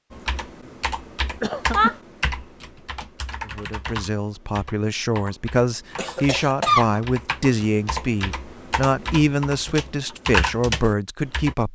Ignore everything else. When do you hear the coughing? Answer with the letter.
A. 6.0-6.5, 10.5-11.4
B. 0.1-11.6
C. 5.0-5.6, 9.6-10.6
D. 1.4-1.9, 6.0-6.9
D.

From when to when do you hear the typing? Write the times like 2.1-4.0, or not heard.
0.1-11.6.